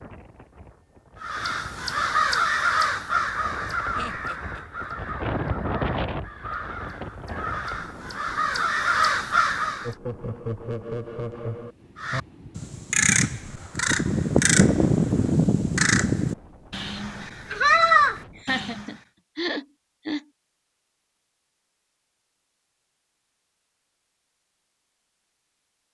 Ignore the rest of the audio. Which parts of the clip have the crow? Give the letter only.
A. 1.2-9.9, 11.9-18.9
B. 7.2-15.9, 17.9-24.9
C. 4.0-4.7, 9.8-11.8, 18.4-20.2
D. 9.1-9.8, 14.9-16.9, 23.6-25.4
A.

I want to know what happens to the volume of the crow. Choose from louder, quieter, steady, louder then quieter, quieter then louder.
quieter then louder.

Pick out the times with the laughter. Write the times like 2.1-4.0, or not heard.
4.0-4.7, 9.8-11.8, 18.4-20.2.